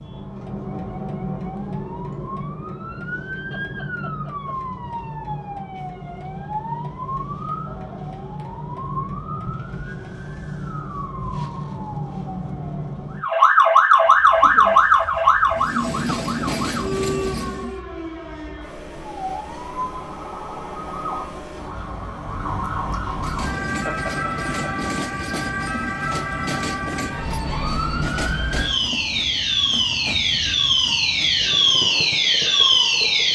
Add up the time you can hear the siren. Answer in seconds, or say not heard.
33 s.